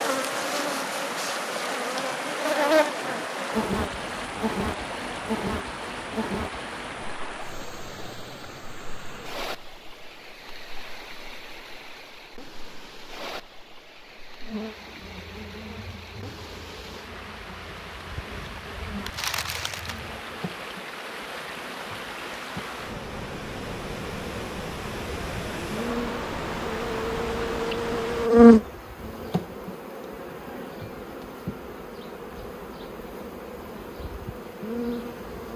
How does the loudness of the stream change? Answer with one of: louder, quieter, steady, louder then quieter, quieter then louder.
quieter then louder.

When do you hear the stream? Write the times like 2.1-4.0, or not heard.
0.0-28.3.